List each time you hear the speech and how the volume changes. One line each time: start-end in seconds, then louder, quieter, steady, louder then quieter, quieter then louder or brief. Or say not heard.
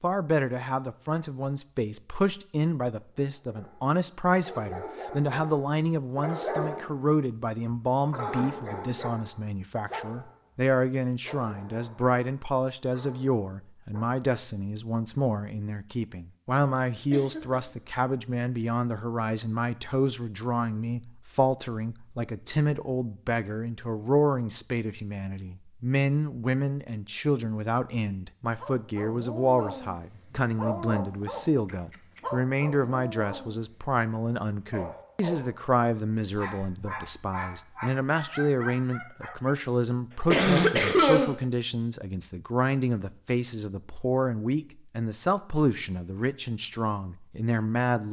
0.0-48.0 steady.